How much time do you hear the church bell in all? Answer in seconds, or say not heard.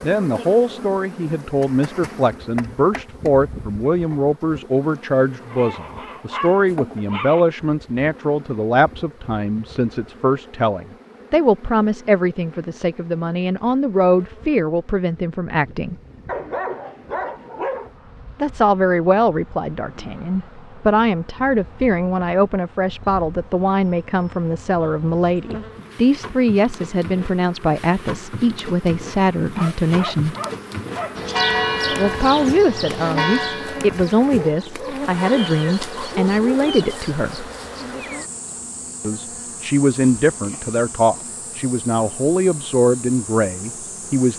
5 s.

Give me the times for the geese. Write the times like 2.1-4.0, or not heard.
not heard.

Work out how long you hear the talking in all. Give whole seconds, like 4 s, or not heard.
39 s.